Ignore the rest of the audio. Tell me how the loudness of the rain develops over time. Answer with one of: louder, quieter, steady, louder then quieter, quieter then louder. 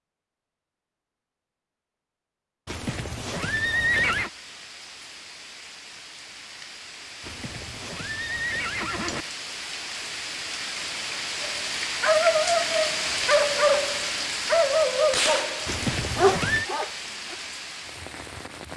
louder then quieter.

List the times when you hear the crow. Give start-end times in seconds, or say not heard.
not heard.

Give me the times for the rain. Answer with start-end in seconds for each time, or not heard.
3.5-18.7.